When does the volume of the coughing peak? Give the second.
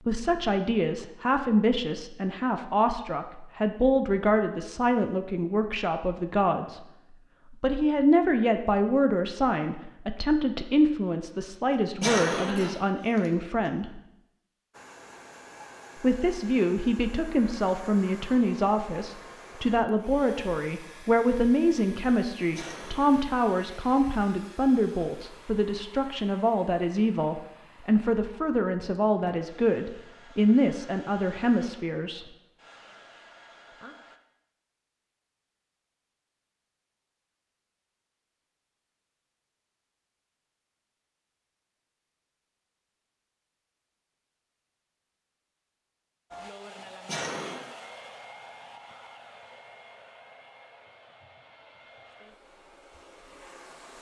12 s.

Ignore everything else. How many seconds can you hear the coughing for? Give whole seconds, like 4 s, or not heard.
2 s.